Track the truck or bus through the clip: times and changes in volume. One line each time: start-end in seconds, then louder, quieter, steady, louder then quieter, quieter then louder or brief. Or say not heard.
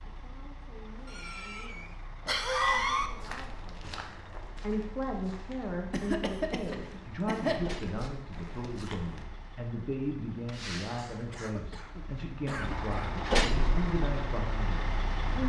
0.0-15.4 louder.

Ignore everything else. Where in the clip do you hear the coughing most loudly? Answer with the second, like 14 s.
3 s.